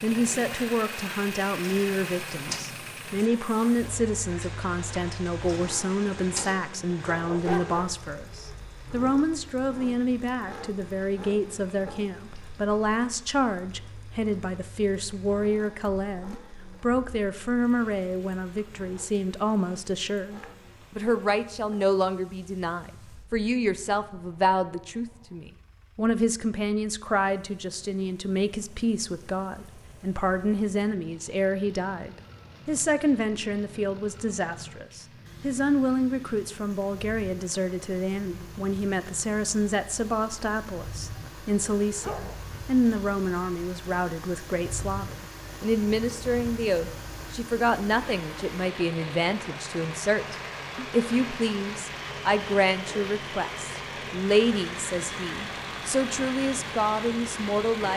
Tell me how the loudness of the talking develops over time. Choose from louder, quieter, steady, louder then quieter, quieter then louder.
steady.